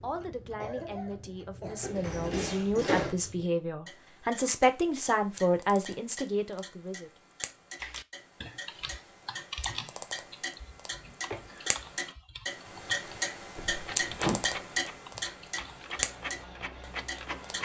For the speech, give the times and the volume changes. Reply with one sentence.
The speech can be heard from 0.0 to 7.1 s, getting louder.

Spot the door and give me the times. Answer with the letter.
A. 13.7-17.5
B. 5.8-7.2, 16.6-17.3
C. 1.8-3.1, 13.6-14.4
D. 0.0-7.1
C.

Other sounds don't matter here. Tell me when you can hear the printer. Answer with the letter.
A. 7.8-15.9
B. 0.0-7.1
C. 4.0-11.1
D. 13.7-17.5
D.